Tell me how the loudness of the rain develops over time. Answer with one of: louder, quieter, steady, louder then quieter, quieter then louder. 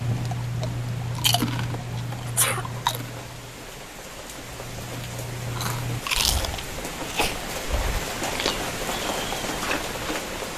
louder.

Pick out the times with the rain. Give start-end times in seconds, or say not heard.
0.0-10.5.